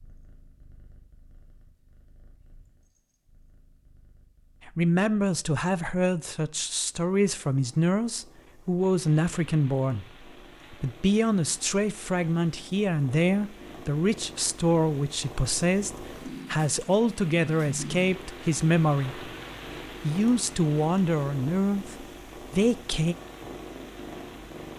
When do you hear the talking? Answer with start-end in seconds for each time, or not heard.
4.7-10.1, 10.7-19.2, 20.0-23.1.